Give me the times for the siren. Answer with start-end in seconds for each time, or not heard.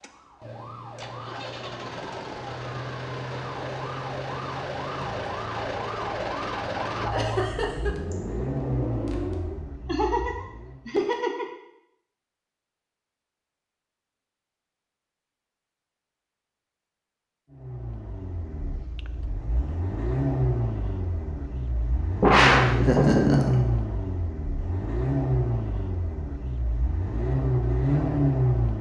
0.0-9.6.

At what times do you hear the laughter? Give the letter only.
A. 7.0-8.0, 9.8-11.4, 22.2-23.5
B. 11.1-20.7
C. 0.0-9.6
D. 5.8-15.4
A.